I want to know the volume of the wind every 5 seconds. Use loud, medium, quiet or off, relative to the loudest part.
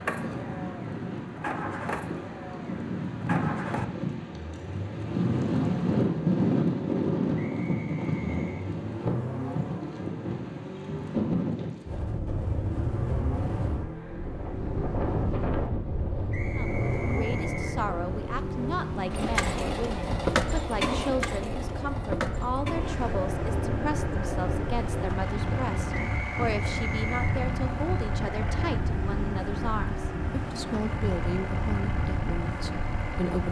medium, loud, medium, medium, medium, medium, medium.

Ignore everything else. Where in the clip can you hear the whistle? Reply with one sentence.
The whistle can be heard from 7.3 to 8.7 s, from 16.3 to 17.8 s and from 25.9 to 27.4 s.